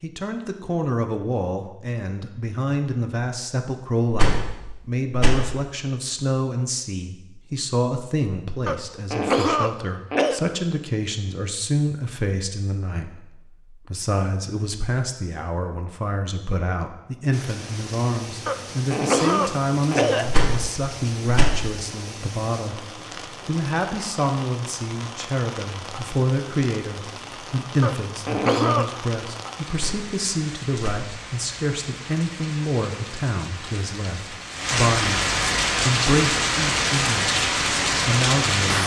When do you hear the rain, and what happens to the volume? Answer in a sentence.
You can hear the rain from 17.3 to 38.8 s, getting louder.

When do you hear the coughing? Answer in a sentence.
The coughing can be heard from 8.7 to 10.4 s, from 18.4 to 20.2 s and from 27.8 to 28.9 s.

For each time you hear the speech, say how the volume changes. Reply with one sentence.
The speech can be heard from 0.0 to 38.8 s, at a steady volume.